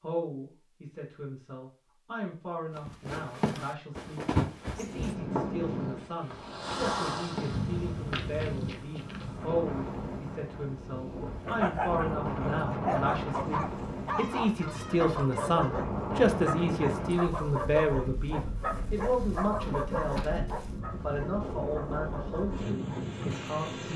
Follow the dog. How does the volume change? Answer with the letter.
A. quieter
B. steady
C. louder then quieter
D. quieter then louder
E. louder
A.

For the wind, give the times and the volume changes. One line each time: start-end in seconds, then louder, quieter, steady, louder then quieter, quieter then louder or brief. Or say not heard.
4.8-23.9 steady.